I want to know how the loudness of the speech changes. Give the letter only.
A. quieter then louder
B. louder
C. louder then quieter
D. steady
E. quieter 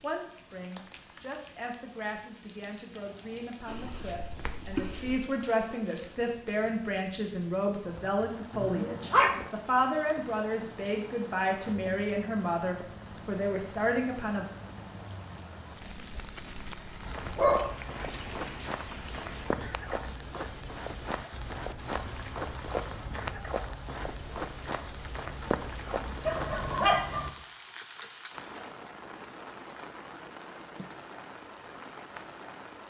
B.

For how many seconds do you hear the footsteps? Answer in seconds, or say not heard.
10 s.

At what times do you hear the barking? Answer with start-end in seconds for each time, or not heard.
3.6-5.2, 8.5-9.4, 17.1-18.7, 26.2-27.3.